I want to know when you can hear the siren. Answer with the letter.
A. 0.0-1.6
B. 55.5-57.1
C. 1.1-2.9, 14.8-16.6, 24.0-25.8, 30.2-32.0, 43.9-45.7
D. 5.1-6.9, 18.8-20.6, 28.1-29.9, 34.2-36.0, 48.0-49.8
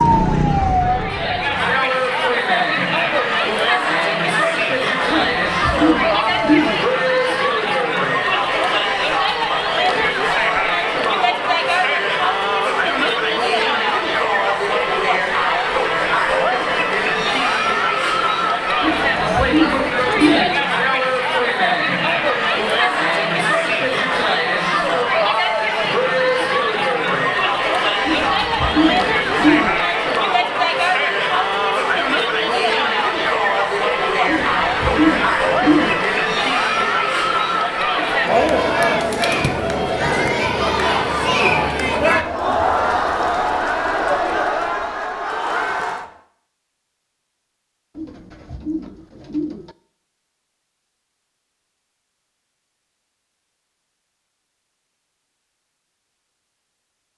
A.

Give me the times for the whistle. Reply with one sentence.
You can't hear the whistle here.